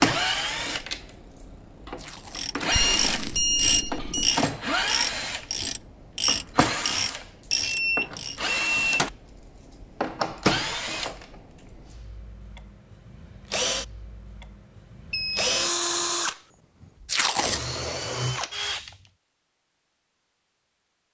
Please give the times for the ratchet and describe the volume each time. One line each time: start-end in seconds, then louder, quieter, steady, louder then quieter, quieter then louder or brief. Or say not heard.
2.3-8.4 steady.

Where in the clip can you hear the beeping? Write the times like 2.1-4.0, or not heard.
2.7-4.3, 7.5-9.1, 15.1-15.6.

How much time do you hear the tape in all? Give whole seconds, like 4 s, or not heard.
2 s.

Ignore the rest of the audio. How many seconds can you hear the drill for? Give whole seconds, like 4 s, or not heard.
19 s.